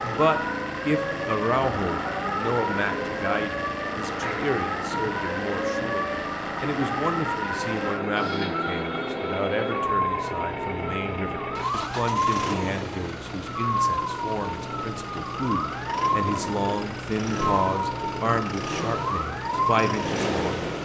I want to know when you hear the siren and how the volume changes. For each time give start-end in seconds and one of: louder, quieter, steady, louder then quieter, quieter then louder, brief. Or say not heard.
0.0-20.7 steady.